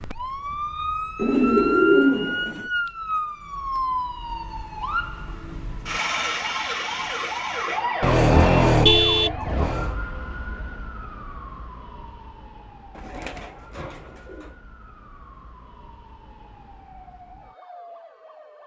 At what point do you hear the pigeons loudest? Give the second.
2 s.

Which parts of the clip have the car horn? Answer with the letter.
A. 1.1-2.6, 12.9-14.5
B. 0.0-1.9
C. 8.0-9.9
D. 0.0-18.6
C.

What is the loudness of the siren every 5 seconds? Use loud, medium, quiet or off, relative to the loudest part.
loud, loud, quiet, quiet.